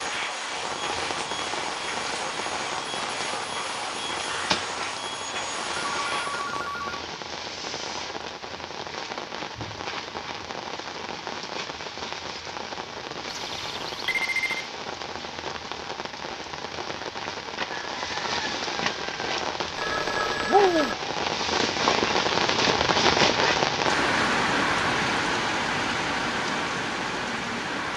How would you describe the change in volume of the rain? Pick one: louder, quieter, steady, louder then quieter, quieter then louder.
louder.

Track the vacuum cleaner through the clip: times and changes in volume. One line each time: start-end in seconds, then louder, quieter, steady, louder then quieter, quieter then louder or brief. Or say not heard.
0.0-6.6 steady.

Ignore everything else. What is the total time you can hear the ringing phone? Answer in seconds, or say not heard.
4 s.